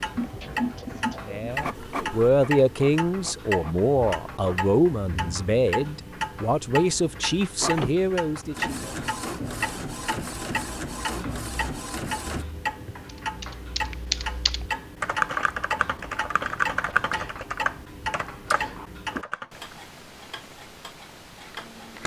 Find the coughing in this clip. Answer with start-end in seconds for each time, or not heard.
0.1-1.5.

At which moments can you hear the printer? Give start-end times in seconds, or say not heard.
1.5-4.7, 7.5-12.4.